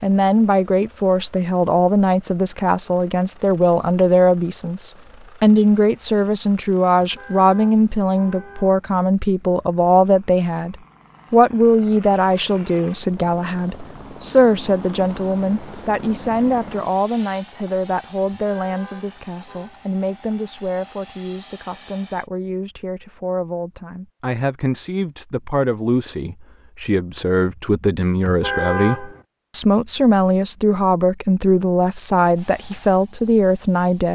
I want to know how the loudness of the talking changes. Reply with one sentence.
The volume of the talking goes down, then up.